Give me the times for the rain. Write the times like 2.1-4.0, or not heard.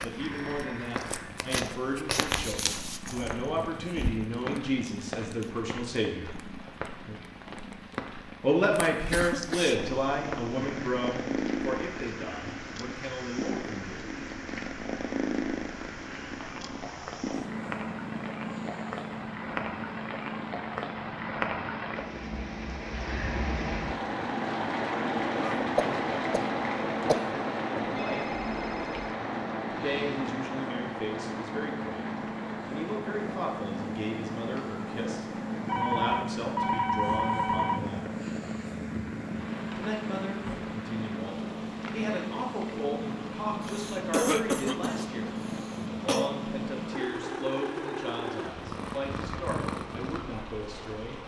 0.0-51.2.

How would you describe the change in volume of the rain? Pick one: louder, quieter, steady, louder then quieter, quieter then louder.
louder then quieter.